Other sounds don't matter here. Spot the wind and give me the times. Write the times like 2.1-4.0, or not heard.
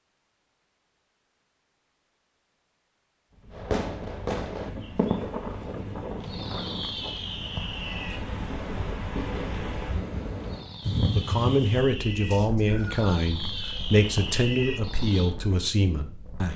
3.3-16.5.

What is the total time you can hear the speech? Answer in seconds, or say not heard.
5 s.